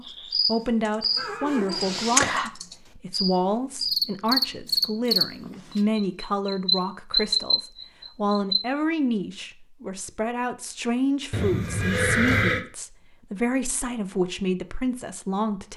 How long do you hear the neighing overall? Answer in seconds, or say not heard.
2 s.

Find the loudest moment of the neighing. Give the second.
12 s.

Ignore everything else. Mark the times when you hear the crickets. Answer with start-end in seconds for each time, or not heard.
0.1-8.6.